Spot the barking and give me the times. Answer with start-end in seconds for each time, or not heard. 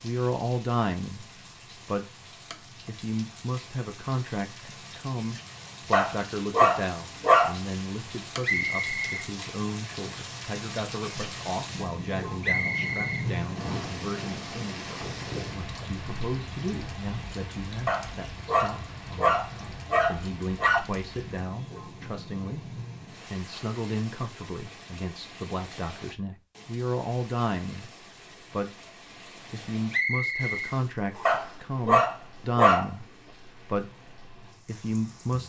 5.9-7.5, 17.9-20.8, 31.2-32.9.